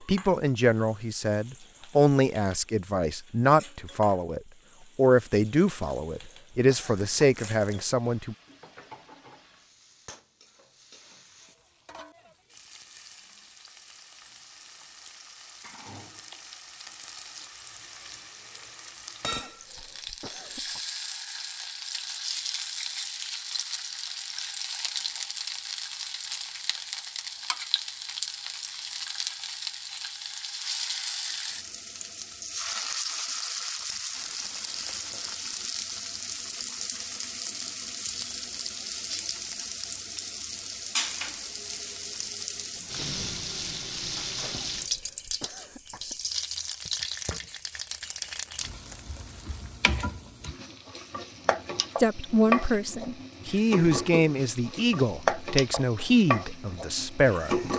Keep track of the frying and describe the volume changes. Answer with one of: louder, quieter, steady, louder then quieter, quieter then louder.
louder.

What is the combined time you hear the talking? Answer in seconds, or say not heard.
14 s.